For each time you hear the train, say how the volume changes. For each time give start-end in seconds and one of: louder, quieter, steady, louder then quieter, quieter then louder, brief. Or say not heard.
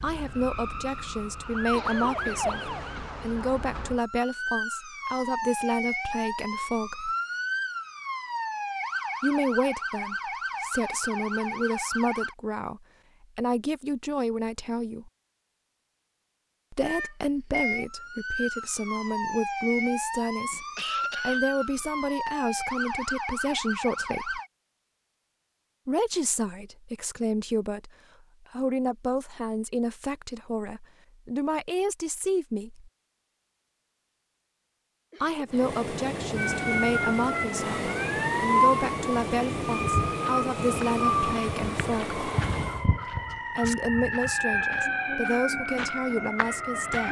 35.5-42.9 steady.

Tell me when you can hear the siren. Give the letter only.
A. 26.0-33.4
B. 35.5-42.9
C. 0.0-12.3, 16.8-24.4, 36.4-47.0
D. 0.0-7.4
C.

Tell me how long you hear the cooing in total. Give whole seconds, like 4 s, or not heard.
not heard.